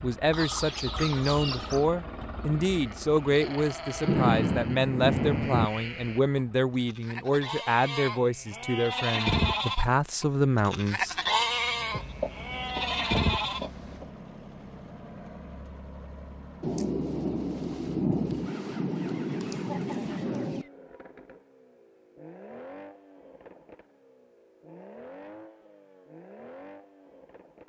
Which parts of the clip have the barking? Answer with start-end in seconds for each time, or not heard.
not heard.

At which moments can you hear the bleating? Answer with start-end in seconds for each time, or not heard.
2.6-13.7.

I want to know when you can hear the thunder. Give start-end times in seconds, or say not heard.
4.0-5.7, 16.6-20.6.